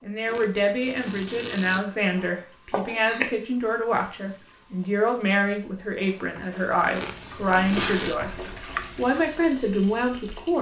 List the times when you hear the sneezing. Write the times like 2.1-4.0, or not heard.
2.7-3.3, 7.6-8.9.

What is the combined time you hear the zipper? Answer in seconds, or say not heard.
3 s.